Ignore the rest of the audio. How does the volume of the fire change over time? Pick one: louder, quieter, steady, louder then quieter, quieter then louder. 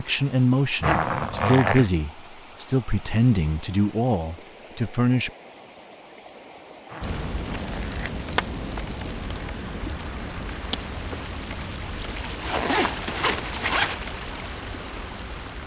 quieter.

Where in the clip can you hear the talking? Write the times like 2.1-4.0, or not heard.
0.0-5.3.